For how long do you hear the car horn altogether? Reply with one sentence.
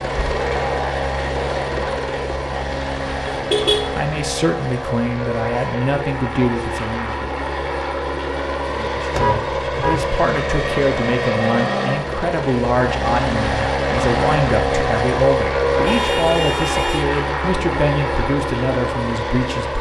You can hear the car horn for 3 seconds altogether.